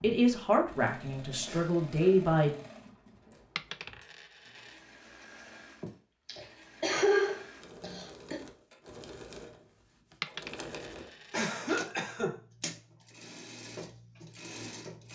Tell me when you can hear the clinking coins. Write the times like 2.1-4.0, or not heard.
3.5-4.8, 10.2-11.4.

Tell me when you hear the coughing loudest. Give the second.
7 s.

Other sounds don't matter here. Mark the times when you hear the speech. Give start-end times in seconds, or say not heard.
0.0-2.5.